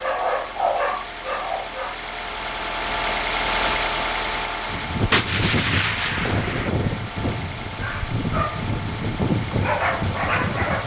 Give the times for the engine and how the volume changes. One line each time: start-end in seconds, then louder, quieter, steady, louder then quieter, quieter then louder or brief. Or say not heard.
0.0-10.8 louder then quieter.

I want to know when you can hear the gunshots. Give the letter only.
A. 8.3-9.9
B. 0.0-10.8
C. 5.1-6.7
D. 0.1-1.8
C.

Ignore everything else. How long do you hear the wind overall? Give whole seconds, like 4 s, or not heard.
6 s.